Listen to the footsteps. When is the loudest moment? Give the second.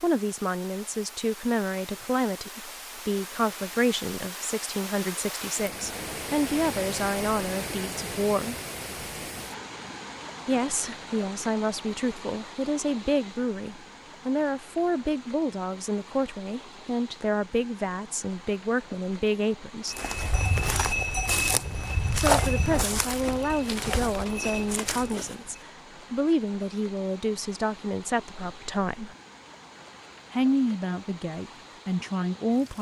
22 s.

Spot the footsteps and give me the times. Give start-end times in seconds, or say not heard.
19.9-25.6.